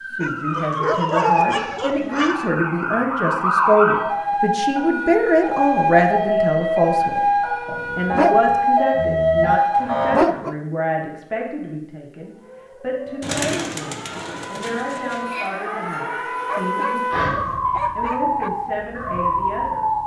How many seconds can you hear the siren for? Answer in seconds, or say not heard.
18 s.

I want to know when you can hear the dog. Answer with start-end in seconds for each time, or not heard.
0.2-2.5, 7.8-10.6, 16.4-18.5.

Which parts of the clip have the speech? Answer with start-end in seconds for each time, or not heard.
0.0-20.0.